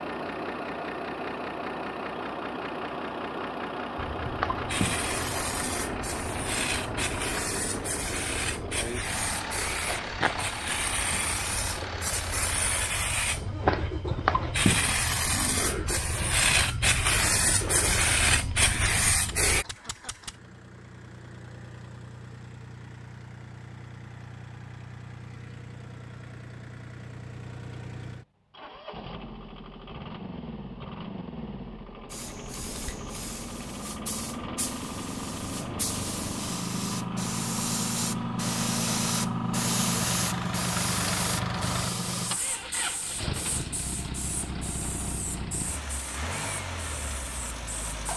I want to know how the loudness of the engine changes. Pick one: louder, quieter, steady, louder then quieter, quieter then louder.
quieter then louder.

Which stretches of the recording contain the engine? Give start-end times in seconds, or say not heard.
0.0-48.1.